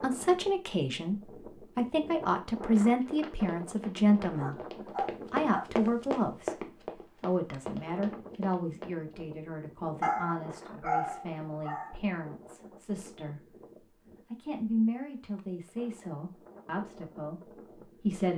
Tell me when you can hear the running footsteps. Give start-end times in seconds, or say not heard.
2.5-9.2.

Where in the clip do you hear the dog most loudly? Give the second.
11 s.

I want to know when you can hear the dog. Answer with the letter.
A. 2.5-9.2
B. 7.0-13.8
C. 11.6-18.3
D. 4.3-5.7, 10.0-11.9
D.